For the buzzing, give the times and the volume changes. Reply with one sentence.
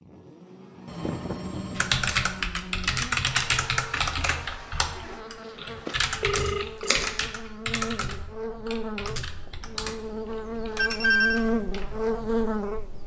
The buzzing can be heard from 0.0 to 13.0 s, getting louder.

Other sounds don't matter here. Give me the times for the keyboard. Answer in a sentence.
You can hear the keyboard from 1.8 to 11.9 s.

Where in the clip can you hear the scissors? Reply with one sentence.
The scissors can be heard from 6.4 to 7.1 s.